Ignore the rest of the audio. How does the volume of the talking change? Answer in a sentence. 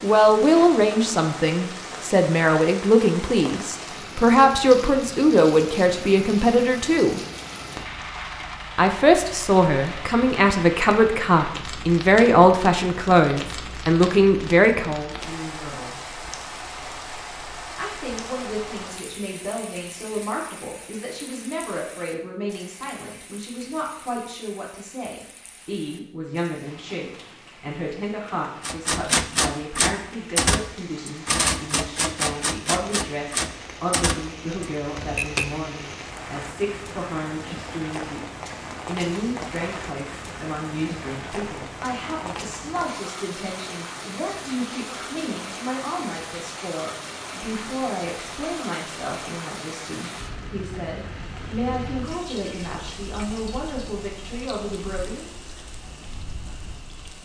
The volume of the talking goes down.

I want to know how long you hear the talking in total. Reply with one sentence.
You can hear the talking for 52 seconds altogether.